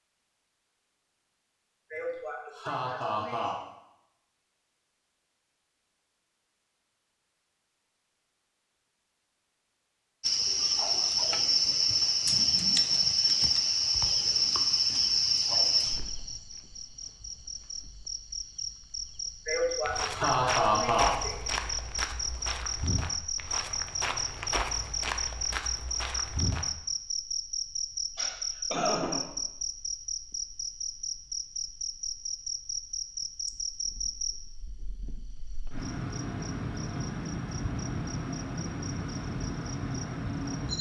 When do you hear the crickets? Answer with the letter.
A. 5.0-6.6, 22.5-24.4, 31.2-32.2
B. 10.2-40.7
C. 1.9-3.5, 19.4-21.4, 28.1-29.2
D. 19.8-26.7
B.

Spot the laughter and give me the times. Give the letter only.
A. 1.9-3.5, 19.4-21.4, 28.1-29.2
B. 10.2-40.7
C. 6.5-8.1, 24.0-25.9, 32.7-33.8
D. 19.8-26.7
A.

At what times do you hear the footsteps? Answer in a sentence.
The footsteps can be heard from 19.8 to 26.7 s.